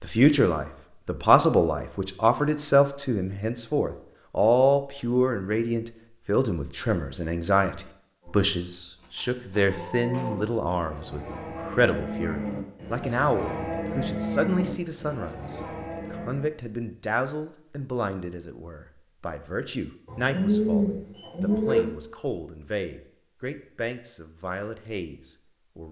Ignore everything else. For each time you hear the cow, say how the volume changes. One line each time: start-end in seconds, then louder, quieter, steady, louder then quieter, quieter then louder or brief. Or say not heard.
8.2-16.6 louder then quieter.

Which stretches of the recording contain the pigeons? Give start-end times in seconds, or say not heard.
20.1-21.9.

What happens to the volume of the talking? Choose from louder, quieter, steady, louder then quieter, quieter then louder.
quieter.